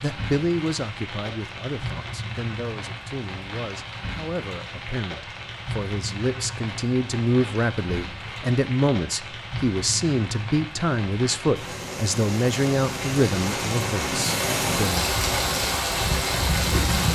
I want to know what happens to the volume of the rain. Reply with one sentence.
The volume of the rain goes up.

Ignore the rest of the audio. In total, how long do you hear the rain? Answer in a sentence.
You can hear the rain for 17 seconds altogether.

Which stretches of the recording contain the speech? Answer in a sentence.
The speech can be heard from 0.0 to 15.1 s.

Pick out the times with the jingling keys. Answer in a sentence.
You can't hear the jingling keys here.